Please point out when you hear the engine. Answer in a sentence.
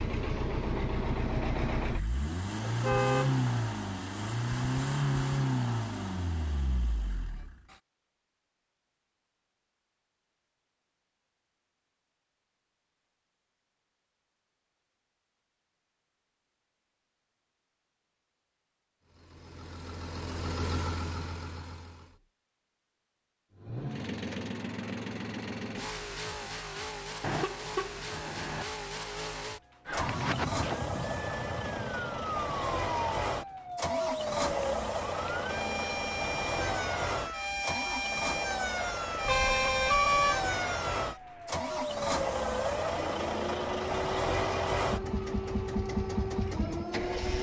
The engine can be heard from 0.0 to 7.8 s, from 19.1 to 22.2 s and from 23.6 to 47.3 s.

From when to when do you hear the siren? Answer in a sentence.
The siren can be heard from 29.9 to 47.3 s.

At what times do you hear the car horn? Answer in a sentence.
The car horn can be heard from 2.6 to 3.3 s, from 27.2 to 28.6 s and from 39.2 to 40.5 s.